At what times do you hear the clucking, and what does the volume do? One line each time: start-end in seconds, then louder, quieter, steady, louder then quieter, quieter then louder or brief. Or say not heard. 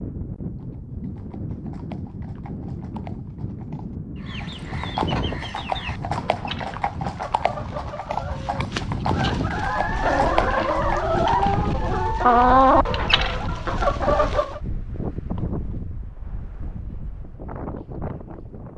4.2-14.6 louder.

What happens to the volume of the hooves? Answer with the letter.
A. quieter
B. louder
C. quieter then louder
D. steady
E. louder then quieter
B.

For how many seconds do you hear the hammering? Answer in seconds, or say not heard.
not heard.